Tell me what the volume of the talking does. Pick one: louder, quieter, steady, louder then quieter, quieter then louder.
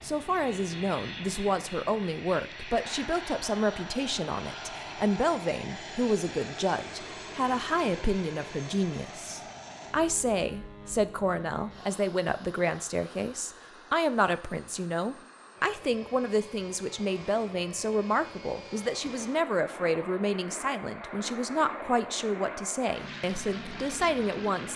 steady.